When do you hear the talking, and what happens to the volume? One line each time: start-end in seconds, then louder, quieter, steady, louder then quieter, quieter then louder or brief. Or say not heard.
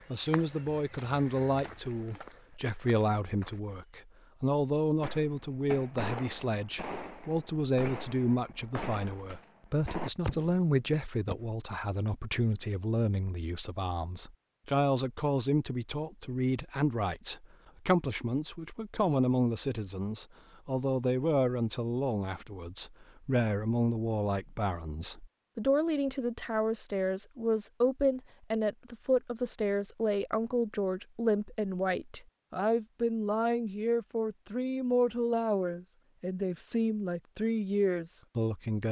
0.1-38.8 steady.